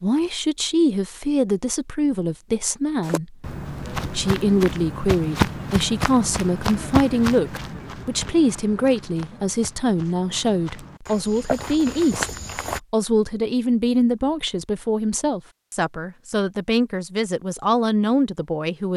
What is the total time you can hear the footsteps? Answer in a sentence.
The footsteps can be heard for 10 seconds in total.